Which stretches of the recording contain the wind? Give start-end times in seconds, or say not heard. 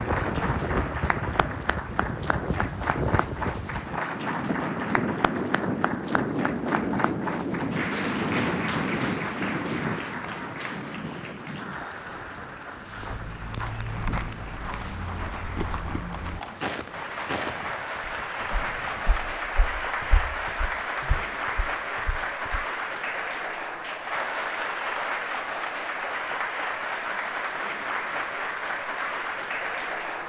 0.0-19.4.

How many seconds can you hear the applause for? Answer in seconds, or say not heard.
30 s.